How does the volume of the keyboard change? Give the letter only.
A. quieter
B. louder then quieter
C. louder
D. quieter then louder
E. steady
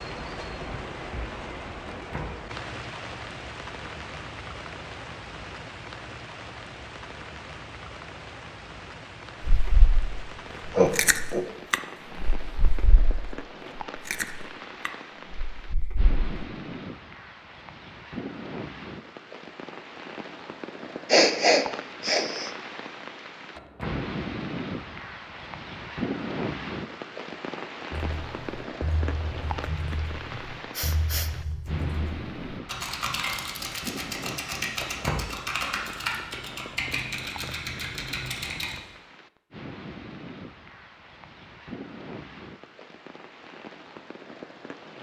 C.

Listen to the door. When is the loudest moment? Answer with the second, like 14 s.
35 s.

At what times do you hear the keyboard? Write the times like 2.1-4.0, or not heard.
27.9-38.8.